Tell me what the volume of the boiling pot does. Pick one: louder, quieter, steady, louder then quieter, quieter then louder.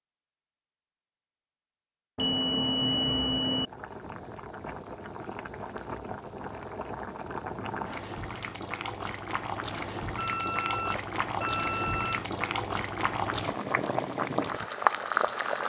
louder.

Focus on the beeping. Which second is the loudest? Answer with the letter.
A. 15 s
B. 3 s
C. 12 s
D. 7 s
B.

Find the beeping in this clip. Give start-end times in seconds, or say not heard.
2.1-3.7, 10.2-12.2.